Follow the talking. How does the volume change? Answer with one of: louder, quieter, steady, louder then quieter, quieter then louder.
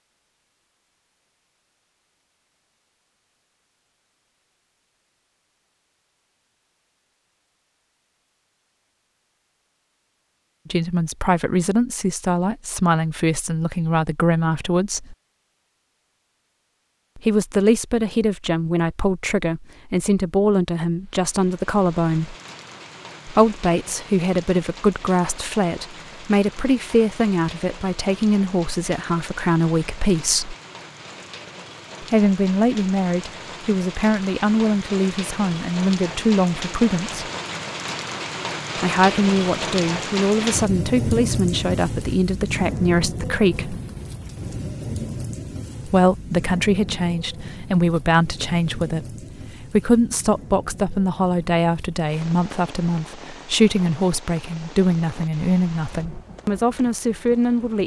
steady.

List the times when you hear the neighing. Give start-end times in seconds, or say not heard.
not heard.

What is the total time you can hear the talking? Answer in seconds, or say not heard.
39 s.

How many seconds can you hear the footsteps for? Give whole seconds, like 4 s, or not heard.
not heard.